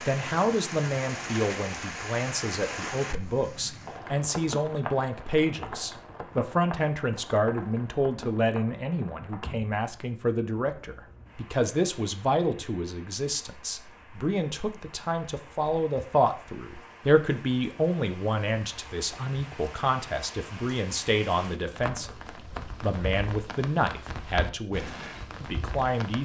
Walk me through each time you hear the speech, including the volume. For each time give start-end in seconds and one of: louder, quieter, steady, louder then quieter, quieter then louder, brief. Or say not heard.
0.0-26.1 steady.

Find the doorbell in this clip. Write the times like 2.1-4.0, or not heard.
not heard.